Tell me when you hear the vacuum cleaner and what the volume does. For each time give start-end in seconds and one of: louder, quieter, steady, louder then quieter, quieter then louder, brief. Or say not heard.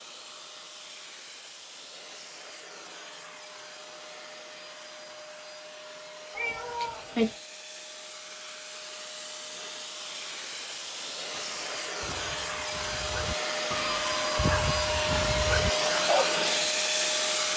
0.0-17.5 louder.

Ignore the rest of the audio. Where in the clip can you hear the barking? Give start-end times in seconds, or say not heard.
11.3-16.4.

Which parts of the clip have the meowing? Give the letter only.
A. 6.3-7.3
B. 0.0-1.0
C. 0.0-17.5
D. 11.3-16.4
A.